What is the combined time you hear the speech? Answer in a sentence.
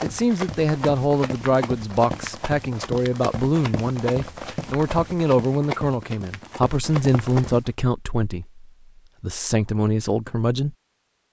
The speech can be heard for 11 seconds in total.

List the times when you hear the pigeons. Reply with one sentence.
The pigeons can't be heard in this clip.